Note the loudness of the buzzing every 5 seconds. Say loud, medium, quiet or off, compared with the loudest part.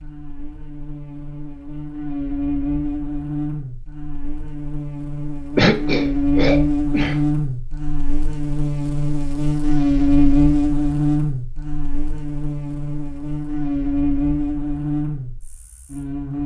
medium, loud, loud, medium.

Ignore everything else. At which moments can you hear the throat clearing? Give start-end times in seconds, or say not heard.
5.5-7.2.